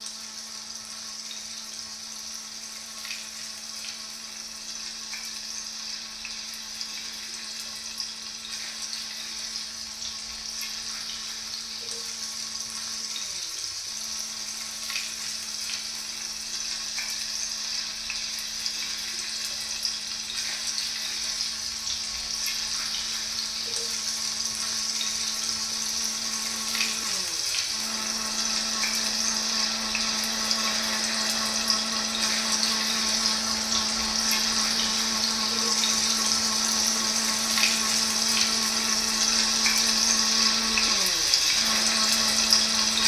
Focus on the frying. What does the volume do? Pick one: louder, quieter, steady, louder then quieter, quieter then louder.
louder.